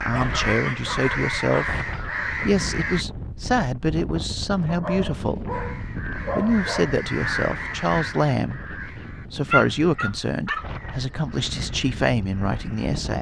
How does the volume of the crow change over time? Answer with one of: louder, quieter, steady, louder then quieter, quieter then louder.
quieter.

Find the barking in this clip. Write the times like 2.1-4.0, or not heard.
0.1-1.6, 4.7-7.0, 9.1-10.7.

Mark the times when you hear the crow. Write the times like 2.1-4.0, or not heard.
0.0-3.0, 5.5-12.9.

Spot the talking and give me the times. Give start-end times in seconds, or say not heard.
0.0-5.5, 6.3-8.6, 9.3-13.1.